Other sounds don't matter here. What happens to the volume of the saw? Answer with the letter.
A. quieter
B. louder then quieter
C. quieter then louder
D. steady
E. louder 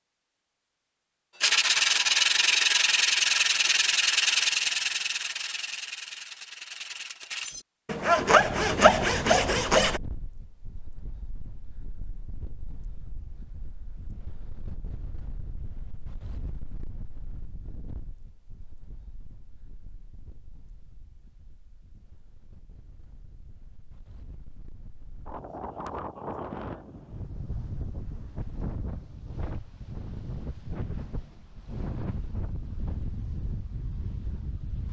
C.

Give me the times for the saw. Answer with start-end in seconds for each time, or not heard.
1.4-10.0.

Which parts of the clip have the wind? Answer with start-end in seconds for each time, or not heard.
8.2-34.8.